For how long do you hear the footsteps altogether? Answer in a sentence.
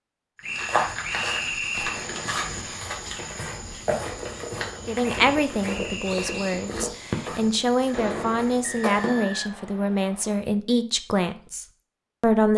The footsteps can be heard for 9 seconds in total.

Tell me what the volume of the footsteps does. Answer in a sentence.
The volume of the footsteps goes down.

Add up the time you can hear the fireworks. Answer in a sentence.
The fireworks can be heard for 8 seconds in total.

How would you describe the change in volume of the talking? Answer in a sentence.
The loudness of the talking stays about the same.